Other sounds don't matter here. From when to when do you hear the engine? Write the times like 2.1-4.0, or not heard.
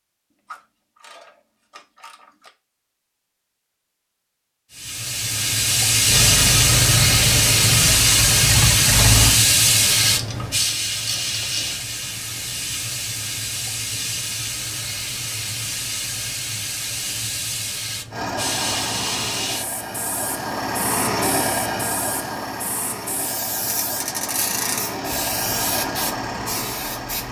6.0-9.4, 18.1-27.2.